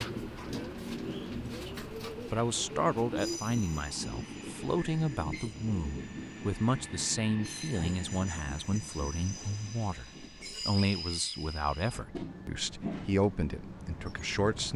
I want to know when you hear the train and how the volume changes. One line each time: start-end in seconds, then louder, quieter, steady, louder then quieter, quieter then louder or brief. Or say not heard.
0.0-14.7 steady.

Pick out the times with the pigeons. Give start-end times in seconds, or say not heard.
0.0-3.4.